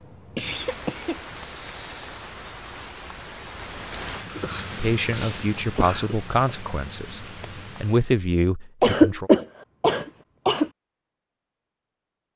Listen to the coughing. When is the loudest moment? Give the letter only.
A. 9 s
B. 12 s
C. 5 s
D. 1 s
A.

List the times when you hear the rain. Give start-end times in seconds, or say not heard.
0.0-8.2.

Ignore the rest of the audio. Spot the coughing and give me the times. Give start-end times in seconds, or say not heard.
0.3-2.2, 4.2-6.2, 8.8-10.7.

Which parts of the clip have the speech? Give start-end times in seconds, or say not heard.
4.8-9.3.